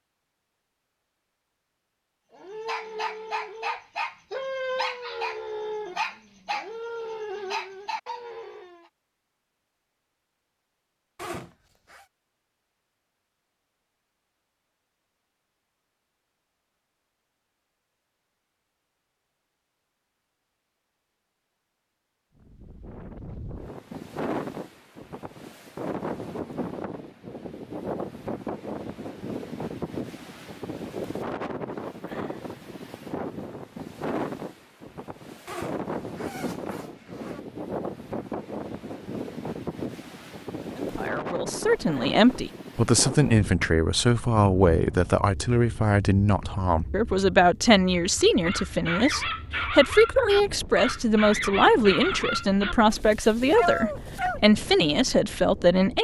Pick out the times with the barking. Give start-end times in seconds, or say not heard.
2.3-8.9, 48.1-54.4.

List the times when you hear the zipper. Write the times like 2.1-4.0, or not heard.
11.2-12.1, 35.5-37.4.